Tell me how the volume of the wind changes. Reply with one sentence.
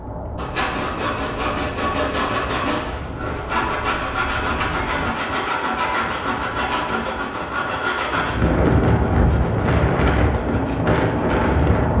The volume of the wind goes up.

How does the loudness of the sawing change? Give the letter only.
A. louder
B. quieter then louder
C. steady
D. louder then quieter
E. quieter
E.